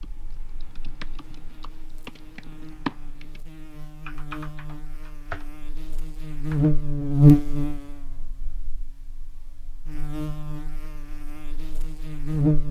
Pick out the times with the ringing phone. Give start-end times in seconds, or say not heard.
not heard.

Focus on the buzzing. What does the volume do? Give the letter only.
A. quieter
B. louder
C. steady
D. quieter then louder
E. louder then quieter
E.